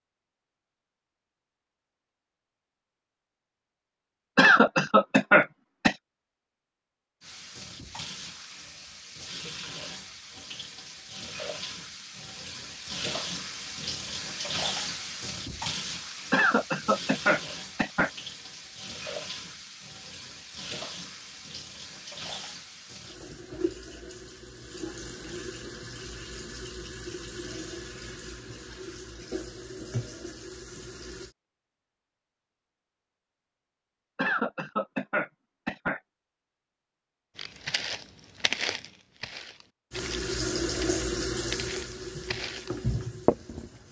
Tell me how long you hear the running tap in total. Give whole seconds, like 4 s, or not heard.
28 s.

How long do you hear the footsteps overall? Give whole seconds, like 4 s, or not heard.
6 s.